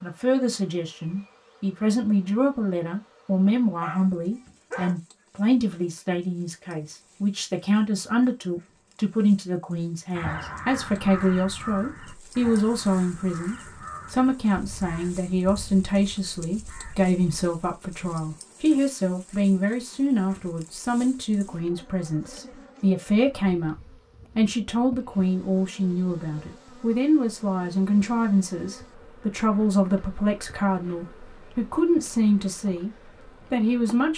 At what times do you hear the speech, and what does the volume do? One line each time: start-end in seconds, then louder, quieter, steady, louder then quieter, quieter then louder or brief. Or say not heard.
0.0-23.8 steady
24.4-34.1 steady.